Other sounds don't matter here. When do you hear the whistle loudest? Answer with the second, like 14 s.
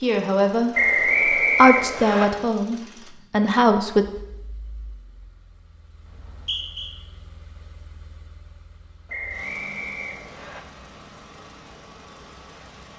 1 s.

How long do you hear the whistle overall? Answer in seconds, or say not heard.
4 s.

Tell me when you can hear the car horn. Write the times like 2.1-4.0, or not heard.
not heard.